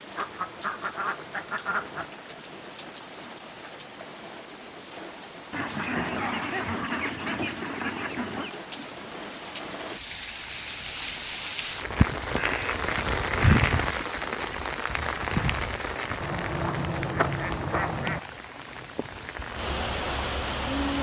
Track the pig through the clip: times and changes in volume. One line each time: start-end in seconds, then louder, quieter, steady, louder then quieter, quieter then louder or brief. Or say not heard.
not heard.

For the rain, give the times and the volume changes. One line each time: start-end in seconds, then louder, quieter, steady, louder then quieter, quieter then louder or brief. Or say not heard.
0.0-20.9 louder then quieter.